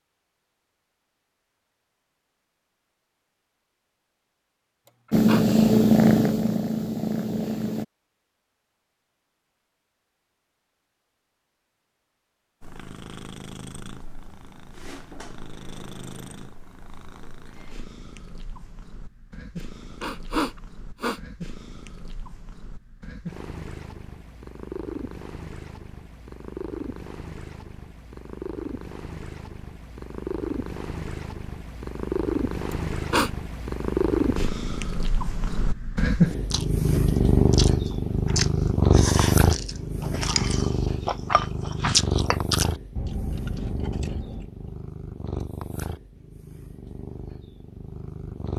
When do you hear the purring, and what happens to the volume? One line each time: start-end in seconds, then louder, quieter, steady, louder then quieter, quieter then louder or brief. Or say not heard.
5.1-7.8 brief
12.6-48.5 louder then quieter.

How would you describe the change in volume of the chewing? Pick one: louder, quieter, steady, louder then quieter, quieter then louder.
louder then quieter.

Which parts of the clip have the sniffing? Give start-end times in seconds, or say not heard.
4.8-5.5, 20.0-21.2, 32.7-33.3.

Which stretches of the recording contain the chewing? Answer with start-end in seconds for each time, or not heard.
36.4-44.8.